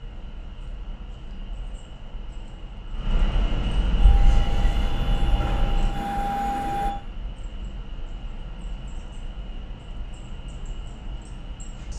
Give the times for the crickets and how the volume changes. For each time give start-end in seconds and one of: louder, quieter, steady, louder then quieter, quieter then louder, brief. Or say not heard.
0.0-11.9 louder then quieter.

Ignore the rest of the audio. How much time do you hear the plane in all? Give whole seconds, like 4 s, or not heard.
3 s.